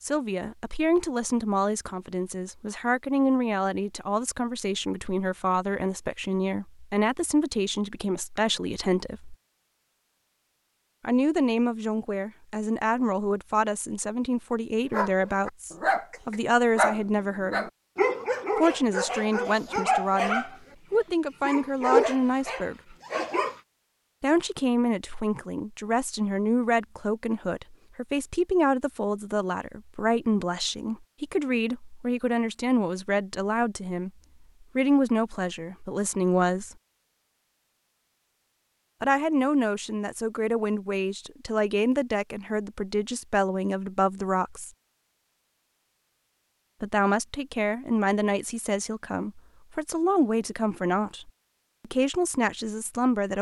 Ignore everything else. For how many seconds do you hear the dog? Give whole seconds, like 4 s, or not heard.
9 s.